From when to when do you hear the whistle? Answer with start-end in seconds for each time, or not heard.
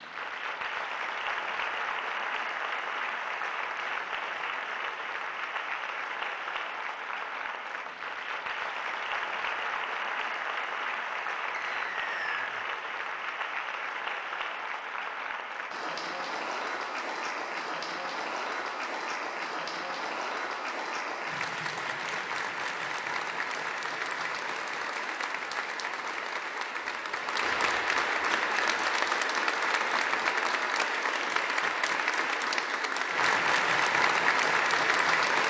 11.5-12.6.